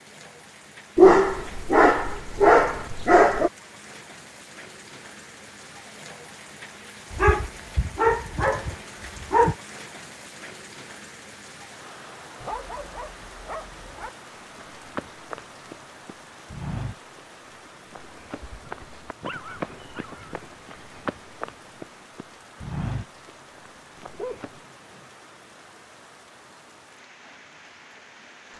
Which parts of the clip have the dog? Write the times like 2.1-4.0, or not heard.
0.9-3.5, 7.1-9.6, 12.4-14.1, 18.4-20.2, 24.1-25.1.